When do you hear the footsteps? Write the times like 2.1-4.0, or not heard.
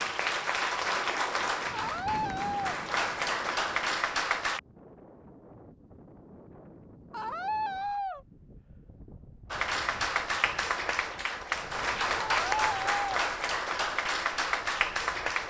not heard.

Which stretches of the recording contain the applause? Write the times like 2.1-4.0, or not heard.
0.0-4.6, 9.5-15.4.